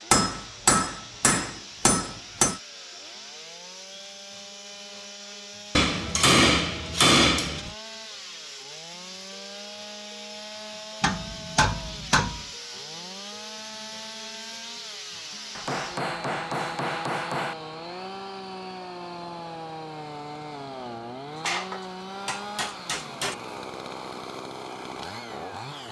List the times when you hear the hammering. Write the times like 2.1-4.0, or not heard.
0.1-2.5, 5.8-7.7, 11.0-12.4, 15.6-17.6, 21.4-23.4.